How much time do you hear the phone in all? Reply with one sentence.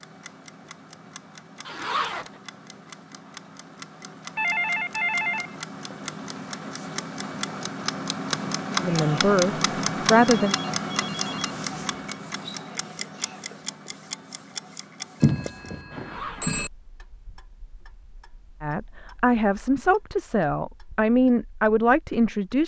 The phone can be heard for 5 seconds in total.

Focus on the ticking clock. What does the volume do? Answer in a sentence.
The loudness of the ticking clock goes up, then down.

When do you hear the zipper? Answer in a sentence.
The zipper can be heard from 1.6 to 2.3 s and from 15.9 to 16.5 s.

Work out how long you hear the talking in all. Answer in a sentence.
The talking can be heard for 6 seconds in total.